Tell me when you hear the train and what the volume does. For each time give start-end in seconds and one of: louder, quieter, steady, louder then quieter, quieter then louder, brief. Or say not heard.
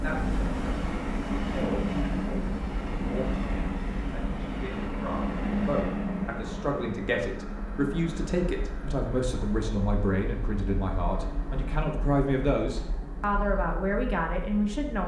0.0-15.0 quieter.